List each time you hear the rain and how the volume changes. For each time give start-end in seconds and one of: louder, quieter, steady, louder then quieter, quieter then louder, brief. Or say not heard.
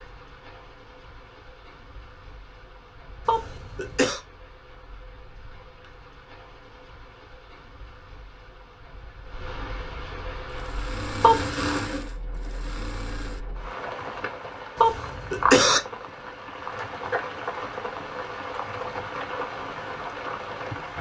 0.0-20.9 louder.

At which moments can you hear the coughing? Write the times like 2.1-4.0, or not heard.
3.2-4.2, 11.2-11.8, 14.8-15.8.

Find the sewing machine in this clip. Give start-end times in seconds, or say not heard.
10.4-13.4.